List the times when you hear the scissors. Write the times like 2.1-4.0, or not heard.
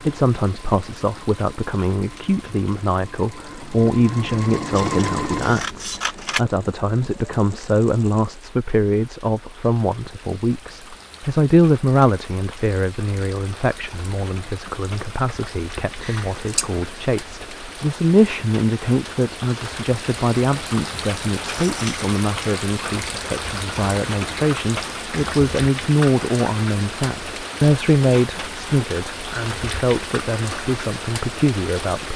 4.8-6.4, 16.0-16.7, 21.4-21.9.